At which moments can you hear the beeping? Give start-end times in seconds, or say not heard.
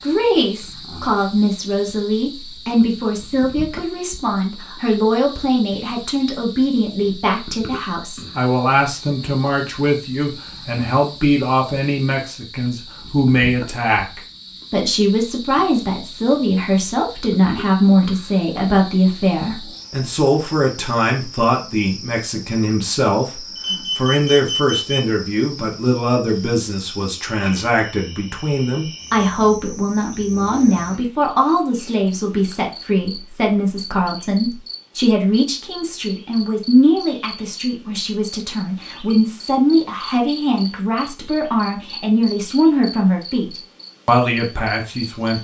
23.6-25.0.